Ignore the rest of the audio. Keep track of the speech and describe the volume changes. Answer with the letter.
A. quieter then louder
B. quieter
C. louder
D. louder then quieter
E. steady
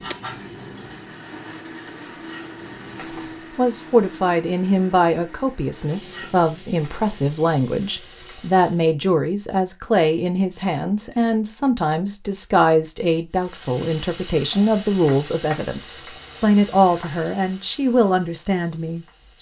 E.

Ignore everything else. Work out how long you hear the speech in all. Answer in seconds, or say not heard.
16 s.